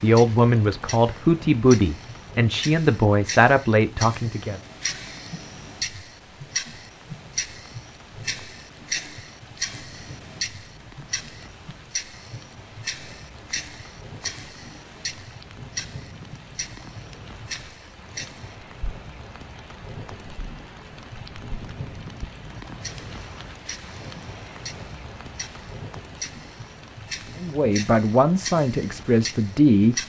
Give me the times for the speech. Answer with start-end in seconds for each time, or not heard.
0.0-4.6, 27.4-30.0.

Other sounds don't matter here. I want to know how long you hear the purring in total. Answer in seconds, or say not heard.
not heard.